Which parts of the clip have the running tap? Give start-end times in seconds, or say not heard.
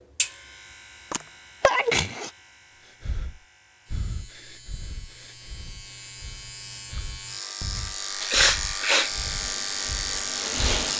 8.9-10.9.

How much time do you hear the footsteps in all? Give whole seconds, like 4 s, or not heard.
not heard.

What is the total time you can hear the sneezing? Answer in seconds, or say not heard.
2 s.